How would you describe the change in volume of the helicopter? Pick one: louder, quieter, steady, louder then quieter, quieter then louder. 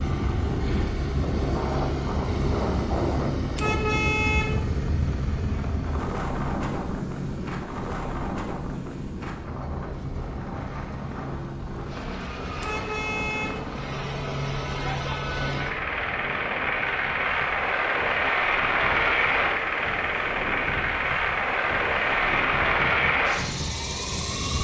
quieter then louder.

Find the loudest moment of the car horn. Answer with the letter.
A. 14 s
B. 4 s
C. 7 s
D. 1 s
B.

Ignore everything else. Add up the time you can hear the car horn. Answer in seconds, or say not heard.
2 s.